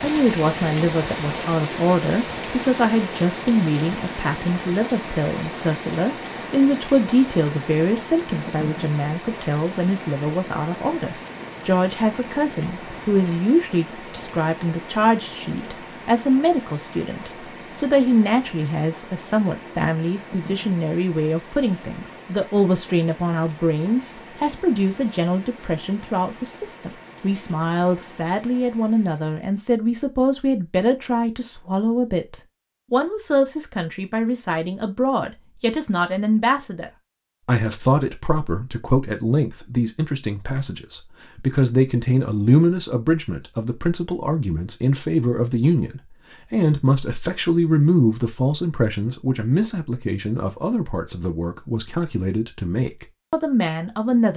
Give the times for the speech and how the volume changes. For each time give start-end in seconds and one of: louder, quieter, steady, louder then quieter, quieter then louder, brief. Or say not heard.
0.0-54.3 steady.